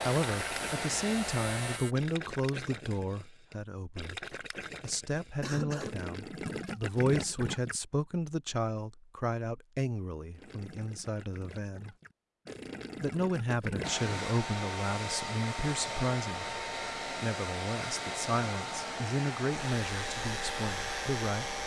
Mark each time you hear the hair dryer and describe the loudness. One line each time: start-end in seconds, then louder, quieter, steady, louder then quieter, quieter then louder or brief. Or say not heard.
0.0-1.8 brief
13.8-21.6 steady.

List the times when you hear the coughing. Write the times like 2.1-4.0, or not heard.
5.4-6.0.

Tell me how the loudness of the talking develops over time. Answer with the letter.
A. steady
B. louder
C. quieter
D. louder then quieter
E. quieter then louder
A.